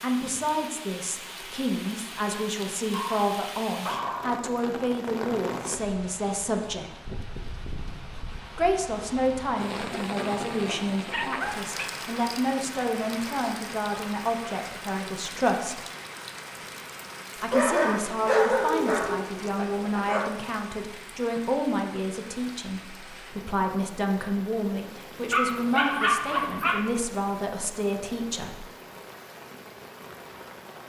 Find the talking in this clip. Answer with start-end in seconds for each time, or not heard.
0.0-6.9, 8.6-15.8, 17.4-28.7.